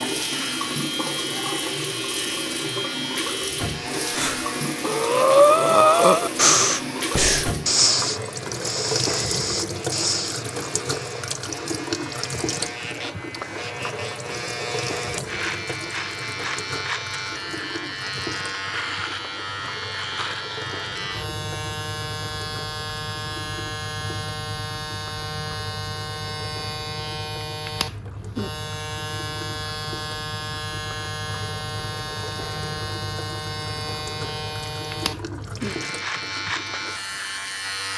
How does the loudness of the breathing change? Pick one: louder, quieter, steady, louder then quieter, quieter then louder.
quieter.